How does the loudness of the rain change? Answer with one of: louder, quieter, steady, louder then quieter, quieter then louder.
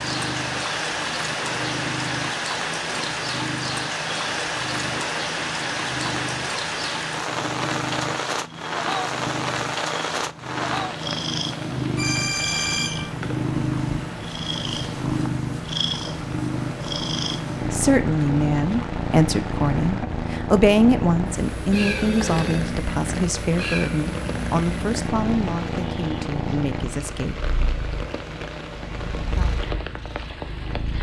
quieter.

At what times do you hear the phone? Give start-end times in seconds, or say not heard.
11.9-13.2, 21.7-22.6.